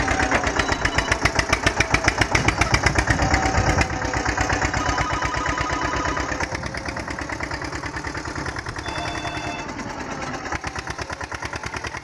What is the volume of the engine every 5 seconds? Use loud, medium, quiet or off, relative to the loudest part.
loud, medium, medium.